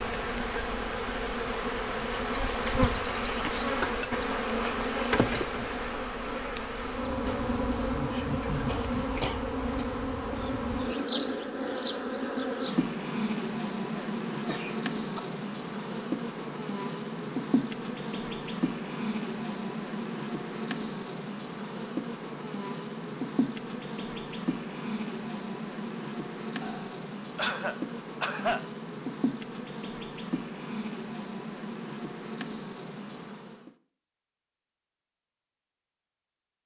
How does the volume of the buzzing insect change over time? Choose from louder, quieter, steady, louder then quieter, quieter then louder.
quieter.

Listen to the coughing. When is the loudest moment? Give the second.
28 s.